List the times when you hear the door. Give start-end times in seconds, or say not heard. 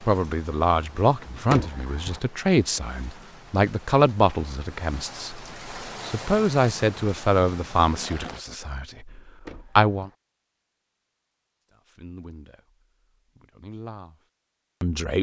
1.4-2.2, 9.4-10.2.